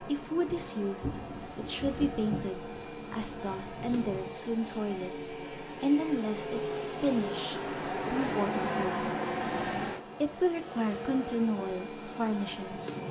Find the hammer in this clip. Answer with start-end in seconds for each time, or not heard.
not heard.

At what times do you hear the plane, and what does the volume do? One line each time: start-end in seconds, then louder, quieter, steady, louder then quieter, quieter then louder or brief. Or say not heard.
0.0-13.0 louder then quieter.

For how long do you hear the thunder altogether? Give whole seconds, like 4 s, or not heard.
3 s.